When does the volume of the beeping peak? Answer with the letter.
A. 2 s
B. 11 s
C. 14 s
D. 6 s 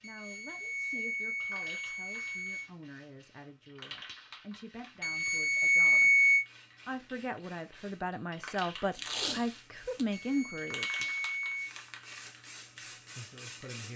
D.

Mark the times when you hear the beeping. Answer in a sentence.
The beeping can be heard from 0.0 to 2.7 s, from 5.0 to 6.5 s and from 10.1 to 11.7 s.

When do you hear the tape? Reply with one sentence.
The tape can be heard from 8.9 to 10.1 s.